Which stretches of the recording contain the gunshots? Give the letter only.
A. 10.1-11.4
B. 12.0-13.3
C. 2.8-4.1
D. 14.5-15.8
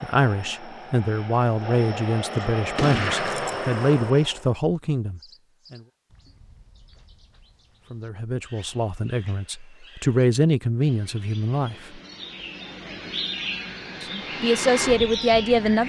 C.